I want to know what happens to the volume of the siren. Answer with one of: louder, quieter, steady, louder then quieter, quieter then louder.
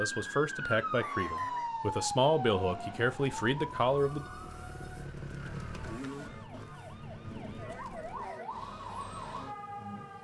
quieter then louder.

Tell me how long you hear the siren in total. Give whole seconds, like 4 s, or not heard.
10 s.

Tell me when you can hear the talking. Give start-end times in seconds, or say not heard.
0.0-4.2.